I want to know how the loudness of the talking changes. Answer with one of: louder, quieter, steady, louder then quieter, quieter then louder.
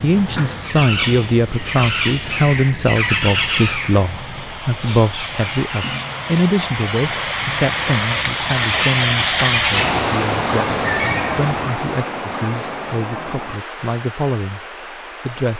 quieter.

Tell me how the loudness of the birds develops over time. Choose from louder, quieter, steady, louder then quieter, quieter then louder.
quieter then louder.